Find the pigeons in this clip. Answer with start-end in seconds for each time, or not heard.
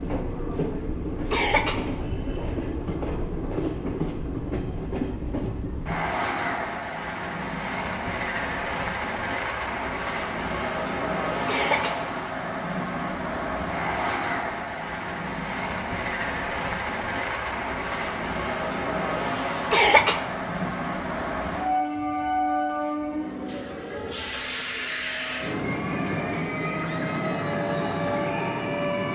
not heard.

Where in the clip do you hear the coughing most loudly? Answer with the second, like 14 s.
20 s.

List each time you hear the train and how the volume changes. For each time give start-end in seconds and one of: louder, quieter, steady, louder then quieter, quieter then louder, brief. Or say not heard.
0.0-29.1 steady.